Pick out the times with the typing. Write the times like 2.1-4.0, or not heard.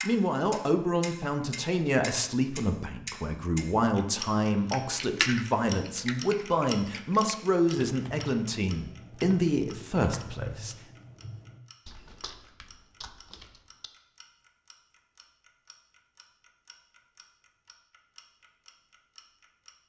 4.7-13.9.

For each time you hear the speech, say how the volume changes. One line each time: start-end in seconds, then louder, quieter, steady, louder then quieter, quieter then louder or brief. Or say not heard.
0.0-10.8 steady.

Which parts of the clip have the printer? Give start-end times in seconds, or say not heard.
not heard.